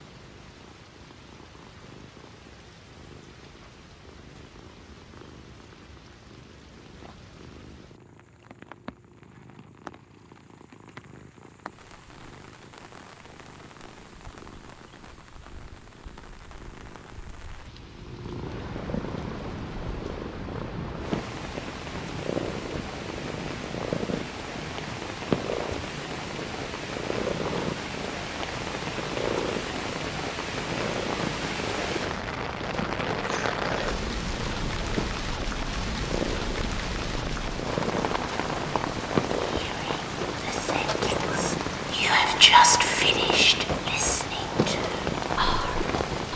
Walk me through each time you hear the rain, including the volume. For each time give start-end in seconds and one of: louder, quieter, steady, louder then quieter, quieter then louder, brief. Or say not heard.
0.0-46.3 louder.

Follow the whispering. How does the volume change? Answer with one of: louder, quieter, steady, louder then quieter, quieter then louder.
louder then quieter.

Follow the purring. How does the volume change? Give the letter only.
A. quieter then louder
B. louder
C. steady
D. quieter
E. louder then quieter
B.